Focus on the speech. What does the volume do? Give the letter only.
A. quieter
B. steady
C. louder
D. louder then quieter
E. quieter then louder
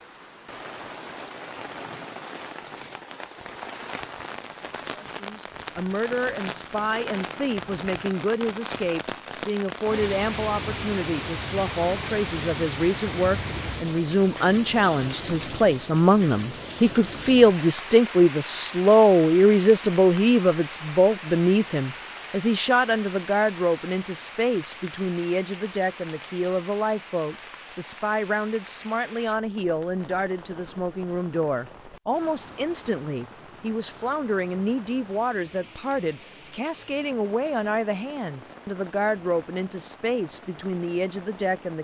D.